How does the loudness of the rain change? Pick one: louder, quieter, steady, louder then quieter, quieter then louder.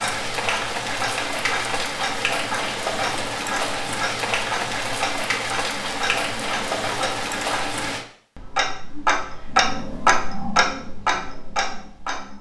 steady.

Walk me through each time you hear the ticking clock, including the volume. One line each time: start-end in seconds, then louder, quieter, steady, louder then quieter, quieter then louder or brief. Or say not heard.
0.0-12.3 louder.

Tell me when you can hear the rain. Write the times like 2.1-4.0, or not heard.
0.0-8.1.